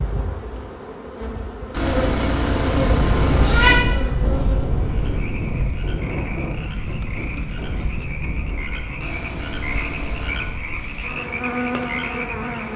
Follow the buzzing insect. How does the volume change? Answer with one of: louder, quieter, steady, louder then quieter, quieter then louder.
quieter then louder.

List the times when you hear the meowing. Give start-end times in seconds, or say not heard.
1.7-3.8, 9.0-10.6.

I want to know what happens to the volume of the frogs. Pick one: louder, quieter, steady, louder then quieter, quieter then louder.
louder.